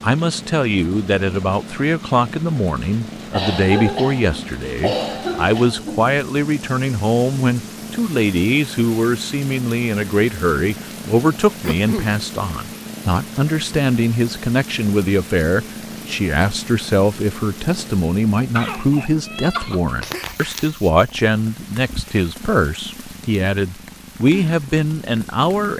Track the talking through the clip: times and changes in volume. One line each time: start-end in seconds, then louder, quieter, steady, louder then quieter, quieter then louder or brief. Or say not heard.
0.0-25.7 steady.